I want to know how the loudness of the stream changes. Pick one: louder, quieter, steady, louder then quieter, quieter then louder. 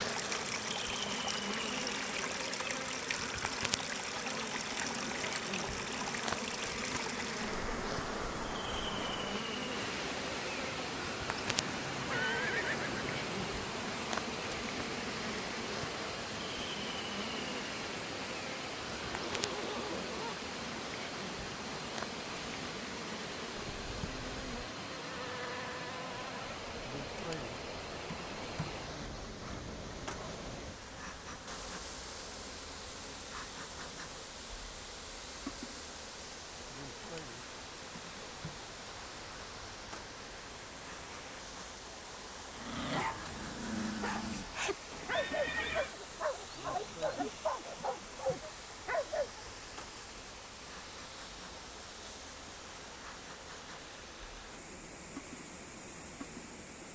quieter.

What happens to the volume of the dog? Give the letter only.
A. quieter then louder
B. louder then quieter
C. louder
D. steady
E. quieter
D.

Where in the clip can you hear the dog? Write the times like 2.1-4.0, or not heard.
42.5-49.5.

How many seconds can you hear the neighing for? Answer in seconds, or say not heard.
4 s.